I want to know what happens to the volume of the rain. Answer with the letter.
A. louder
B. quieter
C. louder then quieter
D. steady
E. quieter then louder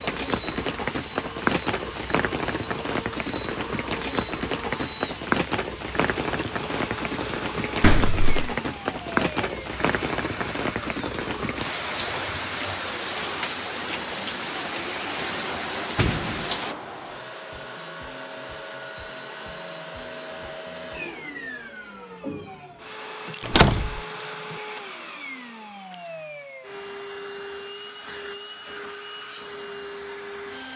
D.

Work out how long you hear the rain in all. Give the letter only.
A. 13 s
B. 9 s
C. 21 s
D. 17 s
D.